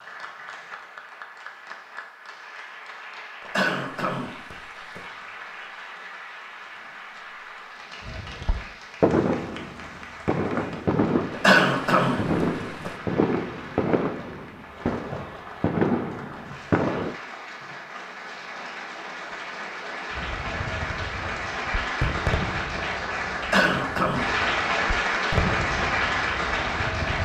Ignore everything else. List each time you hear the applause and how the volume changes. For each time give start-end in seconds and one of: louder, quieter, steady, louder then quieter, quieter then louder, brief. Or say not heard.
0.0-27.2 louder.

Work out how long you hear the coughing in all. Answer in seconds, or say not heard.
4 s.